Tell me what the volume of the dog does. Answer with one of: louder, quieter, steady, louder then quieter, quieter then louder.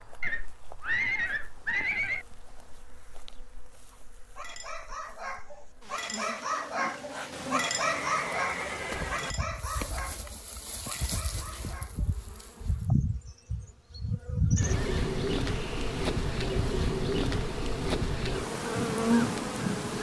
louder then quieter.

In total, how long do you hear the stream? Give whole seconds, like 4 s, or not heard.
not heard.